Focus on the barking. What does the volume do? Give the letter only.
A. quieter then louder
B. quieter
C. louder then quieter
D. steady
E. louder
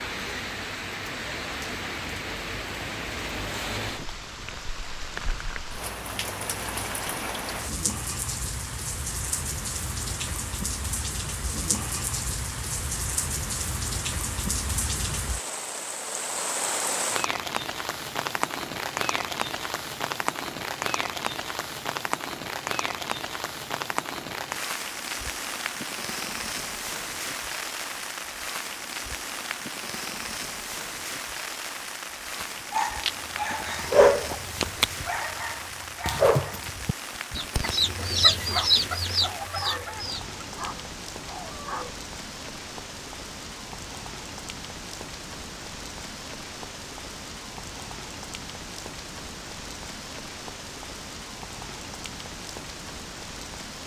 B.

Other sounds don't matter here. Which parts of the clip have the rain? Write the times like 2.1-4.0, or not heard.
0.0-53.8.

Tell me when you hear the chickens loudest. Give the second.
38 s.